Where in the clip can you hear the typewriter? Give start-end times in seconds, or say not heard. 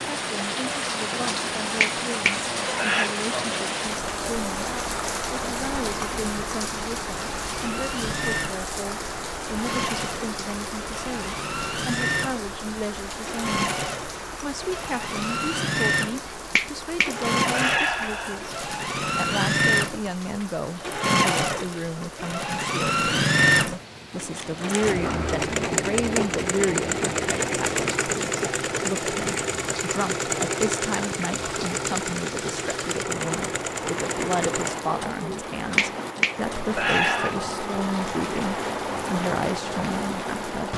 not heard.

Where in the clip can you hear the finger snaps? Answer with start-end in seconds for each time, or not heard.
1.8-3.1, 16.6-18.4, 35.8-37.4.